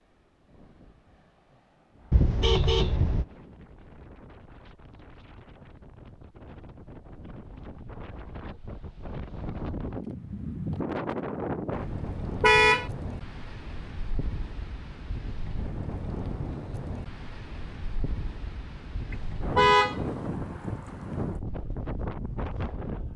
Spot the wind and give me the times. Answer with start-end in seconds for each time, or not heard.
0.0-23.1.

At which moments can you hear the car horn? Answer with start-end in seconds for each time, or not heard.
2.1-3.2, 12.4-12.9, 19.1-19.9.